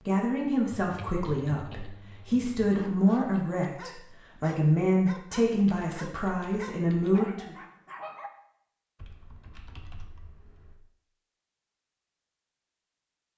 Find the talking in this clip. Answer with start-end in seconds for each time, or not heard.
0.0-7.5.